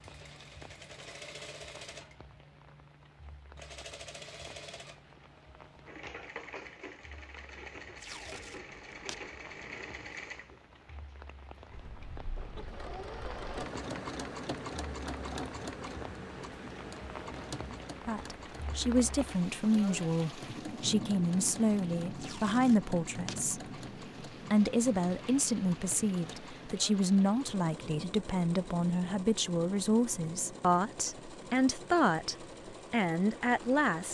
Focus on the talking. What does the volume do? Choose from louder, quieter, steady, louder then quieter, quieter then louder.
steady.